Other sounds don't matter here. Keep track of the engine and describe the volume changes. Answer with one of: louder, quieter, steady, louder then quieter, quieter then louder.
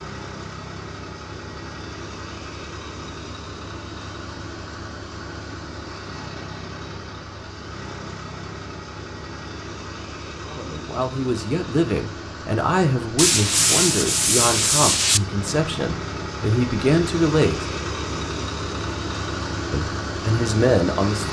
louder.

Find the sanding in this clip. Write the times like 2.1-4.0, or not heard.
13.2-15.2.